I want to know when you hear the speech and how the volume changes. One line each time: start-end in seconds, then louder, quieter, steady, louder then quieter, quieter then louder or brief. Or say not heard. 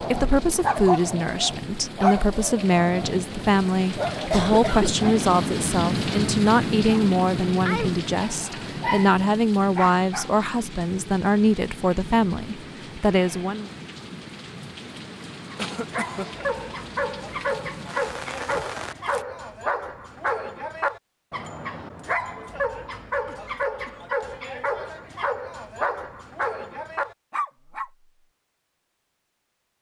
0.0-13.7 steady.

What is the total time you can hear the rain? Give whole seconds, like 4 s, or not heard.
19 s.